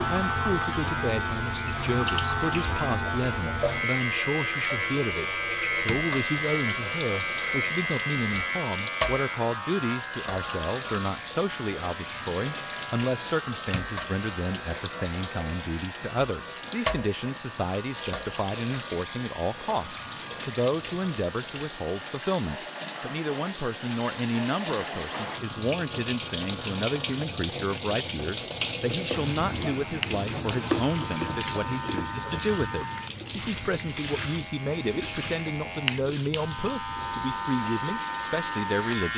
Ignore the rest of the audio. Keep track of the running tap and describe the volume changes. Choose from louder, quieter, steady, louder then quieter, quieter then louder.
louder then quieter.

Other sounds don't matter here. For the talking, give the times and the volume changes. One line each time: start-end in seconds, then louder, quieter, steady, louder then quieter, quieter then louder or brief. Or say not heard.
0.1-39.1 steady.